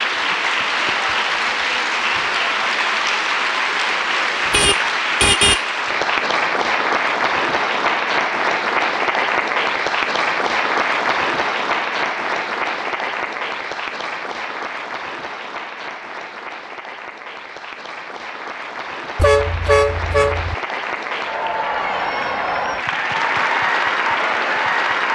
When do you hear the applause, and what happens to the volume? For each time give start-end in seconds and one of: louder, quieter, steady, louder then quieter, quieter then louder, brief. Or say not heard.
0.0-25.1 quieter then louder.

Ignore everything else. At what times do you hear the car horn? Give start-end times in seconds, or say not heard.
4.4-5.7, 19.1-20.6.